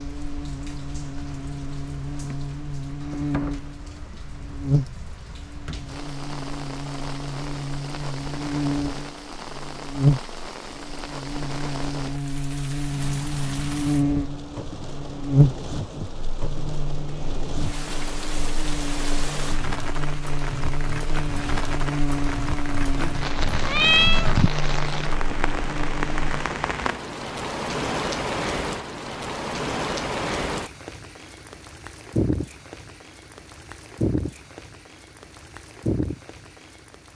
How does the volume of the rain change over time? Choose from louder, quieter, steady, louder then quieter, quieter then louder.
louder.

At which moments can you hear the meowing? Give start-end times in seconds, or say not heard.
22.9-24.5.